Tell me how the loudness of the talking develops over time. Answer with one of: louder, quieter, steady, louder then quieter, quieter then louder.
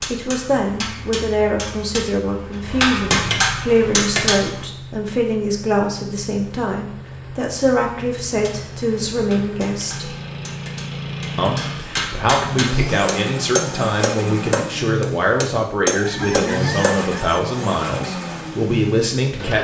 steady.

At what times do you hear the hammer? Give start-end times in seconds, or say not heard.
0.0-4.7, 8.2-16.9.